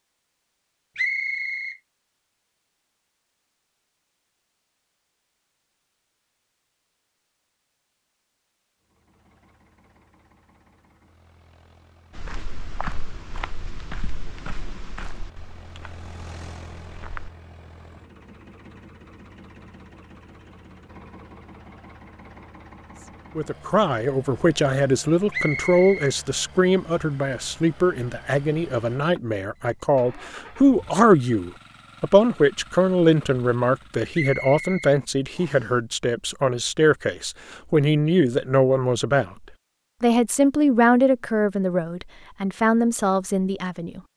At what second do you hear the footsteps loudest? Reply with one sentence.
The loudest moment of the footsteps is at 13 seconds.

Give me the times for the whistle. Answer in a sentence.
The whistle can be heard from 0.9 to 1.8 s, from 25.3 to 26.1 s and from 34.1 to 35.7 s.